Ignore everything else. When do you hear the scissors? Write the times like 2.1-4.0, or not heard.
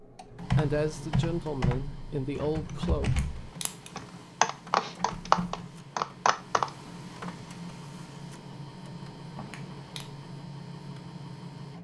3.0-4.0, 9.3-10.1.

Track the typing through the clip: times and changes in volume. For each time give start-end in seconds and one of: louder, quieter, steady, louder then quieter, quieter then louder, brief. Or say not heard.
0.5-6.7 quieter then louder.